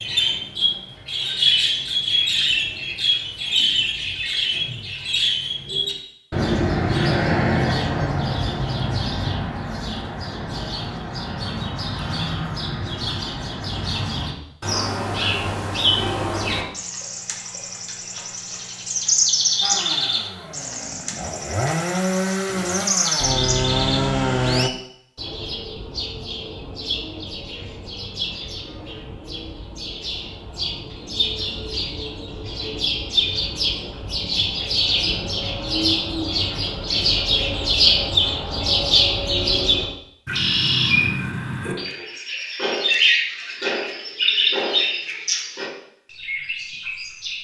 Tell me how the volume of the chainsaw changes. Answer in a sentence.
The loudness of the chainsaw goes up.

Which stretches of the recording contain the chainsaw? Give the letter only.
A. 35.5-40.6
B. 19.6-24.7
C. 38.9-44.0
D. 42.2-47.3
B.